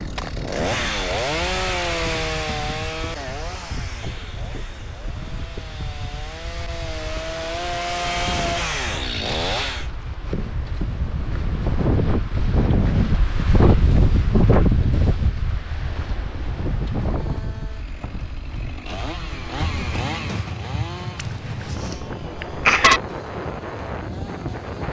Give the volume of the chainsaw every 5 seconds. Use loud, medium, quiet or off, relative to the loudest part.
loud, loud, off, medium, medium.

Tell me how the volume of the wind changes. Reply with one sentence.
The loudness of the wind goes up, then down.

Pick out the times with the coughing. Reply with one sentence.
You can hear the coughing from 21.1 to 23.0 s.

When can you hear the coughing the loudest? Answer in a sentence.
The loudest moment of the coughing is at 23 seconds.